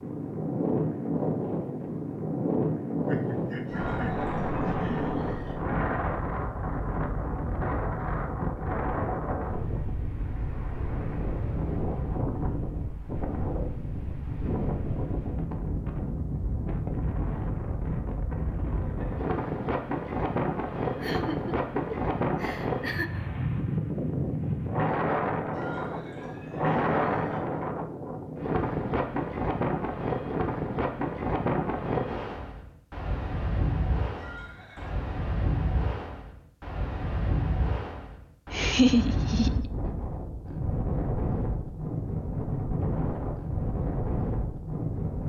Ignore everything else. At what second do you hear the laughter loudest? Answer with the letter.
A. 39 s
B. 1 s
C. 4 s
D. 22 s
A.